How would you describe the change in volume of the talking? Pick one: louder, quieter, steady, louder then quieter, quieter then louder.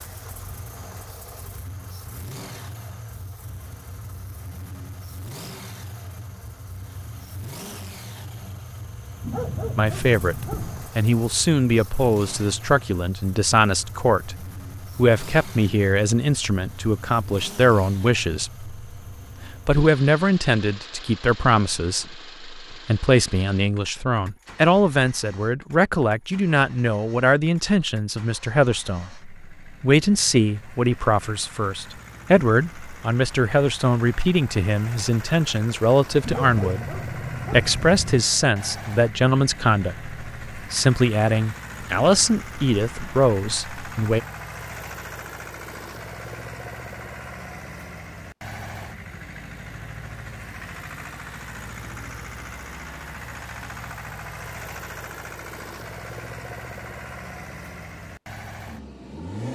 steady.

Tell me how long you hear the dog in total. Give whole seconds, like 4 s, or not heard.
4 s.